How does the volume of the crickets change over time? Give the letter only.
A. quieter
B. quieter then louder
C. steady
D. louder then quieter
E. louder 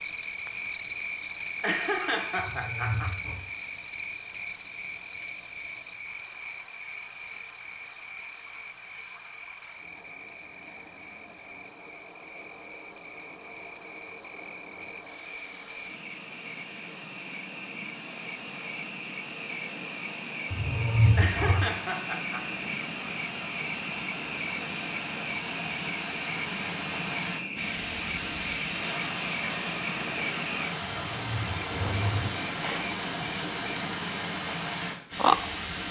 B.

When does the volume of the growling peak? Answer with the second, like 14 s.
21 s.